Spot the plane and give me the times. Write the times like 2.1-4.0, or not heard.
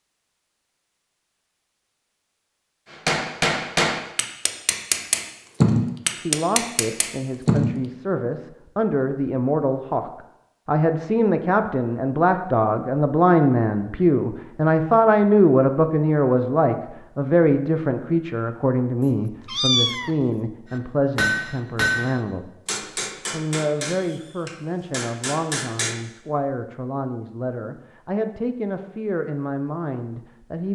not heard.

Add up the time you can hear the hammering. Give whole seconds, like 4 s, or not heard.
10 s.